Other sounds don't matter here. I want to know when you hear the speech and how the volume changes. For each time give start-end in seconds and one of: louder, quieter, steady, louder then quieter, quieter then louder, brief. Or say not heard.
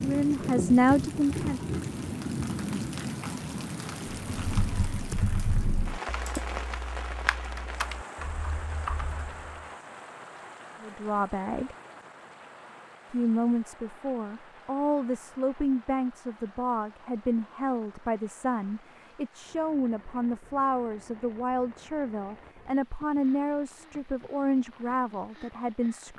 0.0-1.8 brief
10.8-11.8 brief
13.1-26.1 steady.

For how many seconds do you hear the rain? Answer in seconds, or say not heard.
26 s.